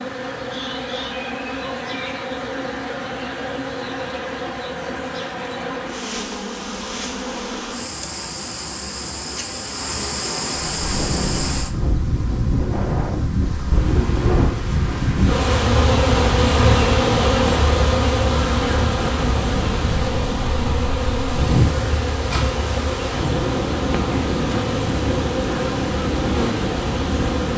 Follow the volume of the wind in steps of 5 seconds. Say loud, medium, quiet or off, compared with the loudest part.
off, off, loud, loud, loud, loud.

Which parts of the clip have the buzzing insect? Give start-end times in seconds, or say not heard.
0.0-27.5.